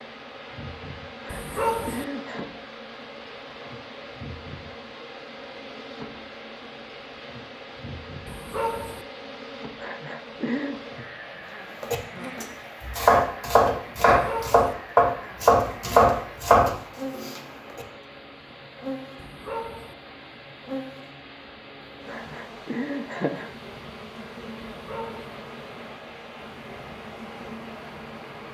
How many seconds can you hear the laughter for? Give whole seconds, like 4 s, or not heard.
4 s.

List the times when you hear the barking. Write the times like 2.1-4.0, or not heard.
1.3-2.0, 8.2-9.1, 14.1-14.7, 19.1-19.9, 24.7-25.4.